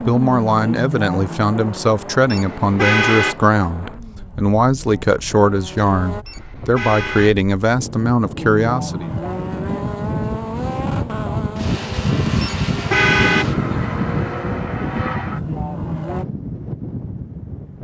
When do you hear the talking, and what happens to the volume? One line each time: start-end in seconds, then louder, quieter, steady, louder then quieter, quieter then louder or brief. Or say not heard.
0.1-9.1 steady.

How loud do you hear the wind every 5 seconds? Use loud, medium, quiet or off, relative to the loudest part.
quiet, medium, loud, medium.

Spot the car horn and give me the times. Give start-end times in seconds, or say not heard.
2.3-3.4, 6.2-7.3, 12.4-13.4.